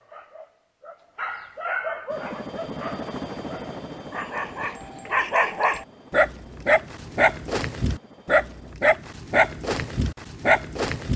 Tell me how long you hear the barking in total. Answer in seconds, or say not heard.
11 s.